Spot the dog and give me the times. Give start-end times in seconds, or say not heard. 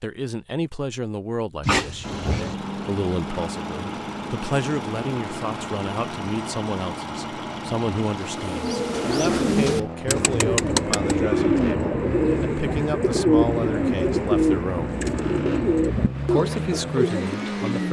1.6-2.5.